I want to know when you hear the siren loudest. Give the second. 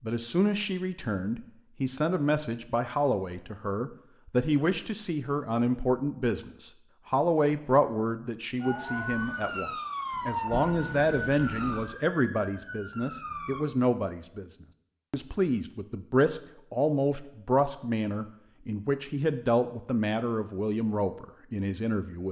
10 s.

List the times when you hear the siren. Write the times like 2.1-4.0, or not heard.
8.6-13.7.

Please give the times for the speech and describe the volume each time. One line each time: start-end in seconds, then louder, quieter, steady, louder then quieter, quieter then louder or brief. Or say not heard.
0.0-22.2 steady.